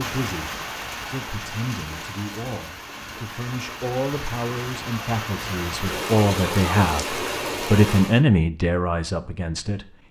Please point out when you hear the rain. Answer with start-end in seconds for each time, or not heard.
0.0-8.2.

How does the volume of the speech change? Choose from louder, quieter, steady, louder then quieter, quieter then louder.
louder.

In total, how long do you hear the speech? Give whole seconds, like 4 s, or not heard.
10 s.